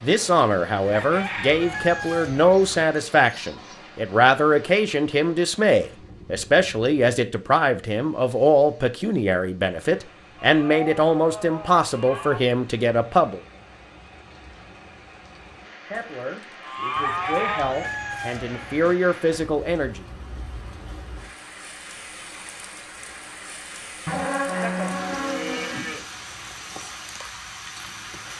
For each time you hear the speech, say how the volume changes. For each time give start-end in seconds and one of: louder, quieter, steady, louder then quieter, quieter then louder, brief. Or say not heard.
0.0-13.4 steady
15.9-20.1 louder.